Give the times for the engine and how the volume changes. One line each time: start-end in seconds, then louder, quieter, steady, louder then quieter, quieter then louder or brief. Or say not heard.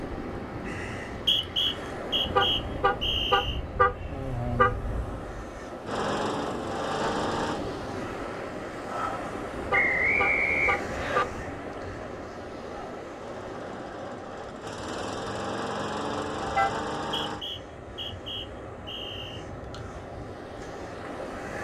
5.8-7.6 brief
13.2-17.4 louder.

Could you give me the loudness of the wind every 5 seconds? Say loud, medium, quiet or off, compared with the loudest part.
loud, loud, loud, medium, loud.